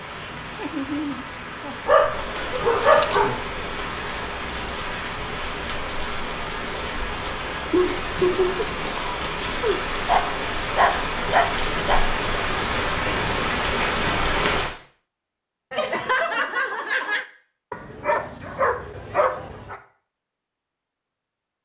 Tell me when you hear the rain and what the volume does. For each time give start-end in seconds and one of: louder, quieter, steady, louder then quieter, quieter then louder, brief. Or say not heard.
0.0-14.7 louder.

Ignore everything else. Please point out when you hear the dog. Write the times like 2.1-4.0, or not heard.
1.9-3.5, 9.3-12.0, 17.7-19.8.